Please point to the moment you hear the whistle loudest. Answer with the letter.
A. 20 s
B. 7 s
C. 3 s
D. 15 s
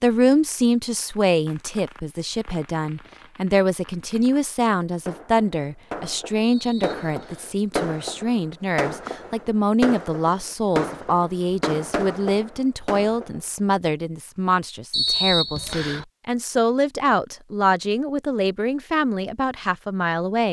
D.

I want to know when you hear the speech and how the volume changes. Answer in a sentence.
The speech can be heard from 0.0 to 20.4 s, at a steady volume.